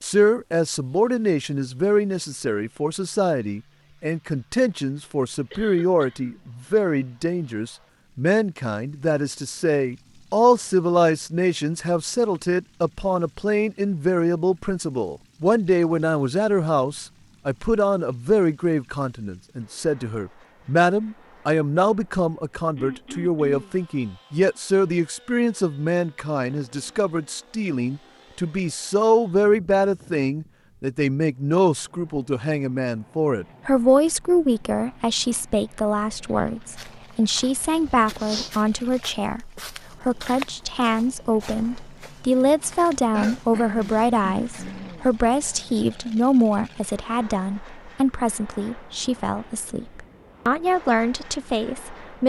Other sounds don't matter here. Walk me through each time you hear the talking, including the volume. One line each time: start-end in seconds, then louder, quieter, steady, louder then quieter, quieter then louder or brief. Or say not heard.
0.0-52.2 steady.